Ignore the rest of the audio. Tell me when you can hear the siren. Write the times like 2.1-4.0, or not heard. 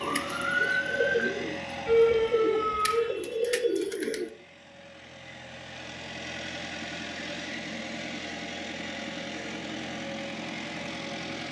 0.0-3.1.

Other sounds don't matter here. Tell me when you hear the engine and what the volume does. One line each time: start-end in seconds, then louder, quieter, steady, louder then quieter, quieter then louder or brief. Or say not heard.
0.0-11.4 quieter then louder.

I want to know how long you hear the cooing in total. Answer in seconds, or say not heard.
4 s.